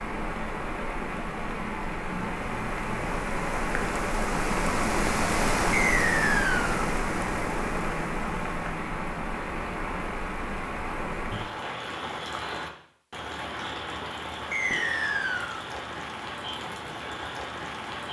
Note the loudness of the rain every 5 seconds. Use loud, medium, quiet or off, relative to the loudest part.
loud, loud, medium, medium.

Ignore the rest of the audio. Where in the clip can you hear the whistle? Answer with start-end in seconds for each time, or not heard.
5.7-6.8, 14.5-15.7.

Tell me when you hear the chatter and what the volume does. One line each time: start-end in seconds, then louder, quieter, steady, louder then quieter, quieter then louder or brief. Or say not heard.
not heard.